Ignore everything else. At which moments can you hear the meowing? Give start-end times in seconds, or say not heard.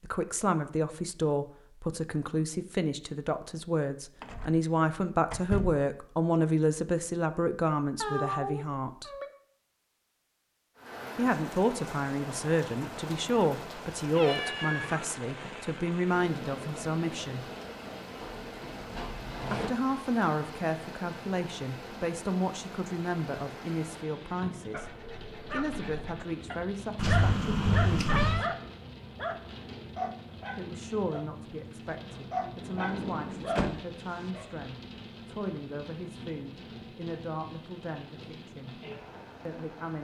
8.0-9.3, 13.9-15.6, 26.9-28.5.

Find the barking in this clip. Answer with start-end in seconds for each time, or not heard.
24.7-34.6.